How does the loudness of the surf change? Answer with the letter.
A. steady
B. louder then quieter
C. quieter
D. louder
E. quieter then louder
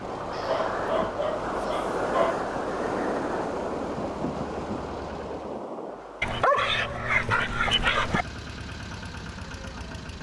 C.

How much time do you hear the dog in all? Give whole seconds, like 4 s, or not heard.
4 s.